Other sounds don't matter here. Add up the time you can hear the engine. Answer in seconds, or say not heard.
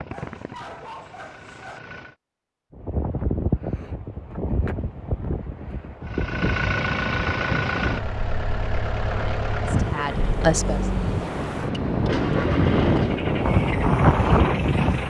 11 s.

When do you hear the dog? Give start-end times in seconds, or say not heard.
0.1-1.8.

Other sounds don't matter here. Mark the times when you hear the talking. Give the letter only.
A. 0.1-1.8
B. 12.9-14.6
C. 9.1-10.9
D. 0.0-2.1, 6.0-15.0
C.